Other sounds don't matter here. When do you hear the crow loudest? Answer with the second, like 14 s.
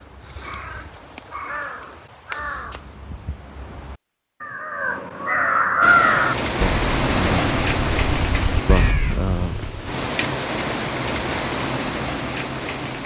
6 s.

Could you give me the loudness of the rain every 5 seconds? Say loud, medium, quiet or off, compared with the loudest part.
off, loud, loud.